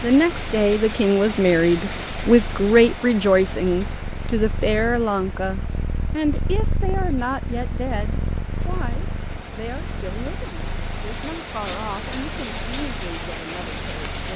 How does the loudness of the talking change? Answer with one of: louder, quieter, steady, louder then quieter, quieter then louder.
quieter.